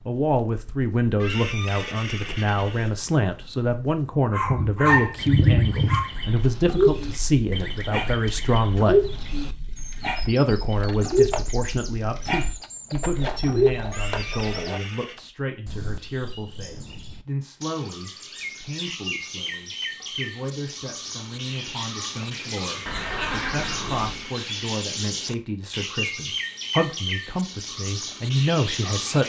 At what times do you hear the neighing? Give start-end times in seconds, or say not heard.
1.2-3.0, 13.9-15.2, 22.9-24.3.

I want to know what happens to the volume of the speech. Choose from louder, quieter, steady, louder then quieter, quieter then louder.
quieter then louder.